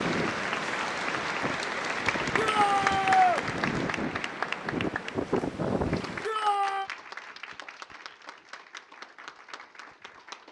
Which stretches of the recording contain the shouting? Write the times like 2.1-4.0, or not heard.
2.4-3.5, 6.2-6.9.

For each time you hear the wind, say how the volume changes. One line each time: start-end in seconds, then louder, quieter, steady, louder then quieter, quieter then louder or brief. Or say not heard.
0.0-6.2 louder.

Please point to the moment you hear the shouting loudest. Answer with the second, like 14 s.
3 s.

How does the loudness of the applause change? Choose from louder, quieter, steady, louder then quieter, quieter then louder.
quieter.